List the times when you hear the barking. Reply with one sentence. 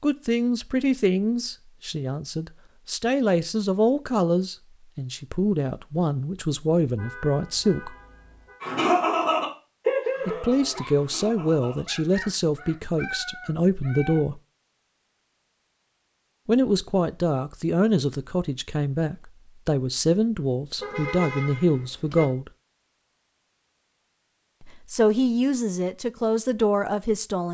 The barking can be heard from 8.6 to 14.2 s.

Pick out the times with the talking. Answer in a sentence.
You can hear the talking from 0.0 to 7.9 s, from 10.2 to 14.4 s, from 16.4 to 22.5 s and from 24.6 to 27.5 s.